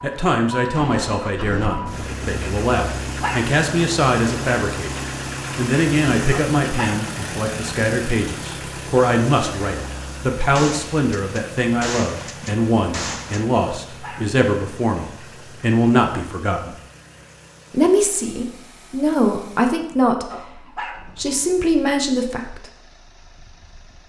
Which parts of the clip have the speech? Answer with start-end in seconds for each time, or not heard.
0.0-4.9, 5.5-16.7, 17.7-20.3, 21.1-22.6.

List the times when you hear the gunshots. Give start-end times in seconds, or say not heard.
10.6-13.4.